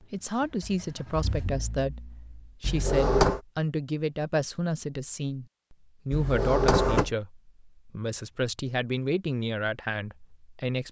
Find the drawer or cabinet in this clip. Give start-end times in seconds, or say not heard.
2.6-3.4, 6.1-7.1.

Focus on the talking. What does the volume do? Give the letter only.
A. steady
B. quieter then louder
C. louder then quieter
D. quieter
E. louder
A.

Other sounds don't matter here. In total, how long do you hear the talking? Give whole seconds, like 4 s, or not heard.
11 s.